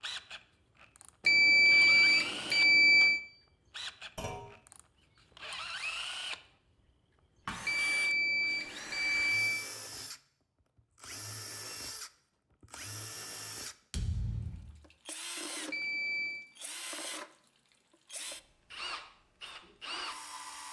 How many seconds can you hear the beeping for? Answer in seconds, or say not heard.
5 s.